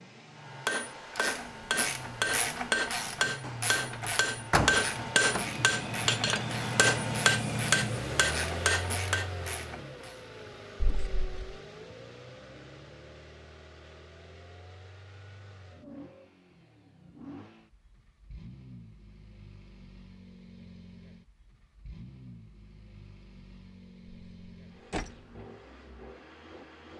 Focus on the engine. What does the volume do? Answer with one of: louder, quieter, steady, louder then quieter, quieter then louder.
louder then quieter.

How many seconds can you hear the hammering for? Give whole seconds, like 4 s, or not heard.
9 s.